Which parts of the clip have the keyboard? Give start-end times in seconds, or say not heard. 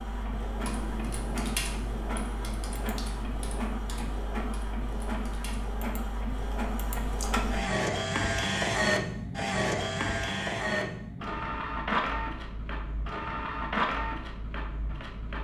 0.5-5.8.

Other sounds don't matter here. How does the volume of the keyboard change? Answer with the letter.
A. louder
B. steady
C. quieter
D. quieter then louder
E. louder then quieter
C.